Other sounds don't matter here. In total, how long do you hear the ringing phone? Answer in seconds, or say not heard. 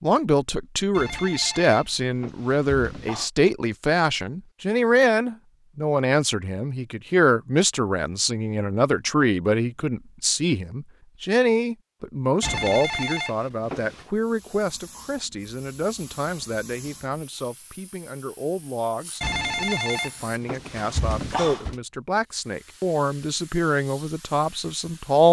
7 s.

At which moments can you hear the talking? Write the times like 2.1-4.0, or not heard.
0.0-25.2.